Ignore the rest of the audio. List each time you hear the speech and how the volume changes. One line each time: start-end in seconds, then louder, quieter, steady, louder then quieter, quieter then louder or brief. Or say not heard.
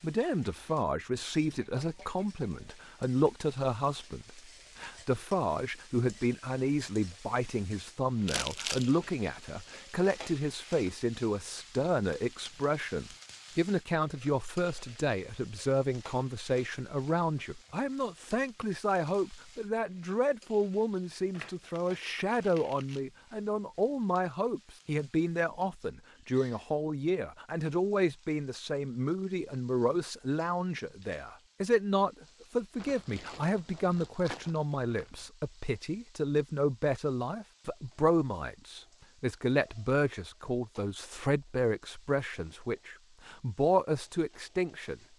0.0-45.0 steady.